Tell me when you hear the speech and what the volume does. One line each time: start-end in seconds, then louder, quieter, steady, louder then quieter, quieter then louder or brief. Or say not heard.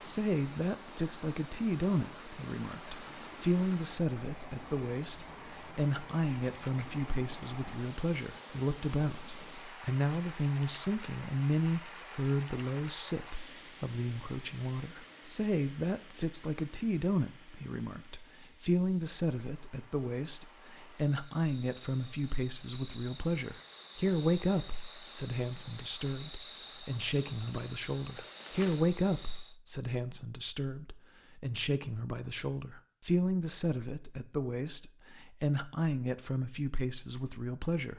0.0-37.9 steady.